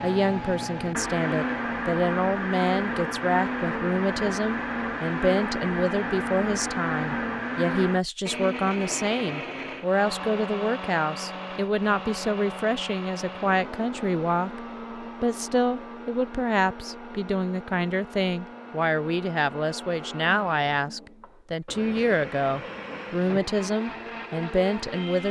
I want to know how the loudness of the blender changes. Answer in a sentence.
The loudness of the blender goes down.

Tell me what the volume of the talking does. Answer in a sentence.
The volume of the talking stays about the same.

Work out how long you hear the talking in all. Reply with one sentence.
You can hear the talking for 25 seconds altogether.